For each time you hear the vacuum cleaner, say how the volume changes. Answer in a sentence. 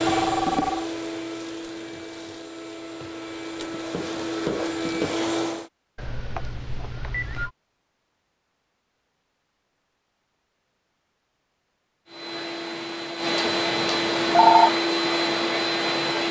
The vacuum cleaner can be heard from 0.0 to 5.7 s, getting quieter then louder; and from 12.1 to 16.2 s, getting louder.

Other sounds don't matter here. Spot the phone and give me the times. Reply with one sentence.
The phone can be heard from 0.1 to 0.8 s, from 6.0 to 7.5 s and from 13.4 to 14.8 s.